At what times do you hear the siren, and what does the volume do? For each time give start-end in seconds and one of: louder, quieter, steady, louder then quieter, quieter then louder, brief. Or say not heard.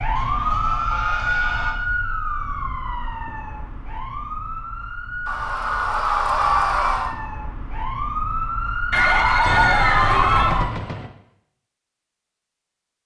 0.0-10.7 quieter then louder.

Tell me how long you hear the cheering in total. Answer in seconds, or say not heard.
5 s.